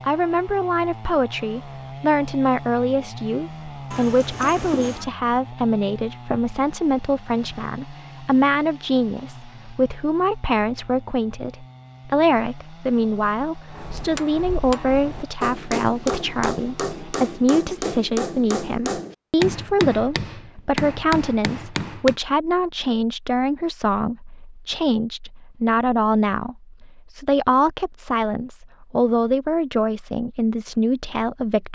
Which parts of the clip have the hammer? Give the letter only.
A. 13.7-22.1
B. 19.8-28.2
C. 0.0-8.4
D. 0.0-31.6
A.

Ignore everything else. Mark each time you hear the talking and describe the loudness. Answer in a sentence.
The talking can be heard from 0.0 to 31.6 s, at a steady volume.